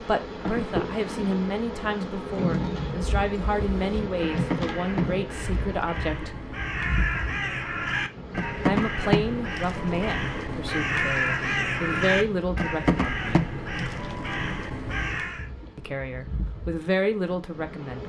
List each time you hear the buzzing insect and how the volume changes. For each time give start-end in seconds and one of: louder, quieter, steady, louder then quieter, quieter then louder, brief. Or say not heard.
0.0-18.0 quieter.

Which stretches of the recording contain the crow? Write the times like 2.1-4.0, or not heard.
3.5-15.4.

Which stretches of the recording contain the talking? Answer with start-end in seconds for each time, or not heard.
0.0-6.3, 8.7-13.6, 15.8-18.0.